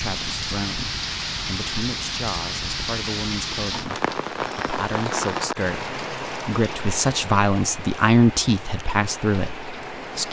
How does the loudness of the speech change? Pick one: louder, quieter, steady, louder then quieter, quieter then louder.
louder.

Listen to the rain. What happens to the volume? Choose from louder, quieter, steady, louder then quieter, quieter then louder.
quieter.